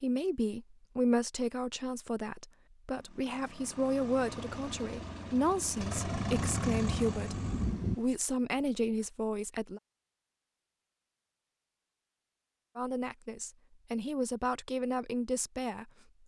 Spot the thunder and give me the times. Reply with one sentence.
The thunder can be heard from 6.0 to 8.0 s.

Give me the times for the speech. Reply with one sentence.
The speech can be heard from 0.0 to 9.8 s and from 12.8 to 15.9 s.